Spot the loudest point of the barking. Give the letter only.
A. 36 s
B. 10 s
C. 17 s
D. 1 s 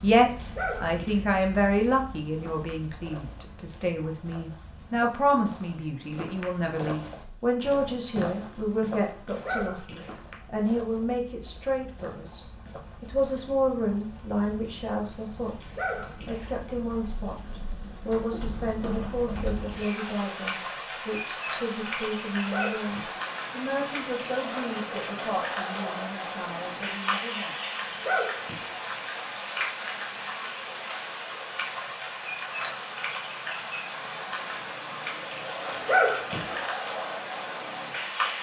A.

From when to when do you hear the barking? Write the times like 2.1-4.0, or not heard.
0.3-1.2, 9.2-10.2, 15.6-16.5, 22.4-23.2, 27.9-28.8, 35.7-36.6.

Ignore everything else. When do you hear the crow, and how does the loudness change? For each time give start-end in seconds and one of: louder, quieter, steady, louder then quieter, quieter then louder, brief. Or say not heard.
not heard.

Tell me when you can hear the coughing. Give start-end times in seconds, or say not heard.
not heard.